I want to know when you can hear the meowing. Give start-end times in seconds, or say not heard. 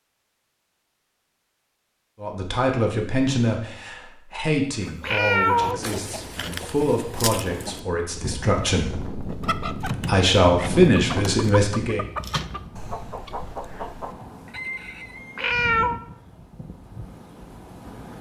5.0-5.8, 15.3-16.0.